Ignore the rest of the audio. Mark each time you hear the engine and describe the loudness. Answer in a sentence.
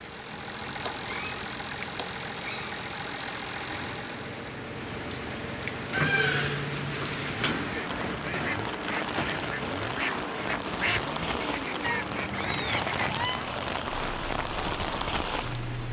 The engine can be heard from 0.0 to 15.8 s, at a steady volume.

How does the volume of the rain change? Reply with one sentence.
The volume of the rain goes up.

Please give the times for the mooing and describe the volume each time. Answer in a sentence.
The mooing can't be heard in this clip.